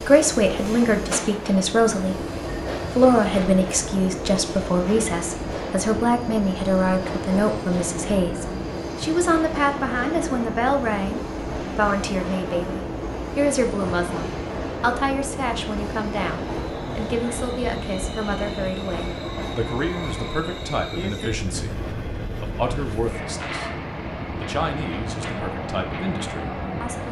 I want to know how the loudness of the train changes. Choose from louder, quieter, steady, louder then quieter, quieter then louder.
steady.